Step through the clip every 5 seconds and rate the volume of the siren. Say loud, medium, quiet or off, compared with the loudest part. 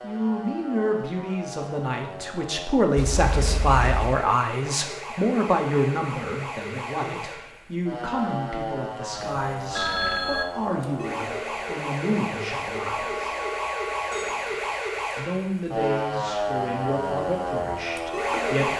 medium, medium, loud, loud.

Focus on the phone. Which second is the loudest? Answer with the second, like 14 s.
10 s.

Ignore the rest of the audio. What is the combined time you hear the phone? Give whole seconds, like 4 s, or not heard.
4 s.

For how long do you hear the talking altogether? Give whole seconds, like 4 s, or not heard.
17 s.